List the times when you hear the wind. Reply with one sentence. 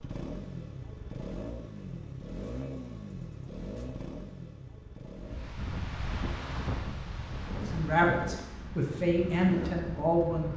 You can hear the wind from 5.2 to 10.4 s.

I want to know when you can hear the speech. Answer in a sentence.
You can hear the speech from 7.5 to 10.5 s.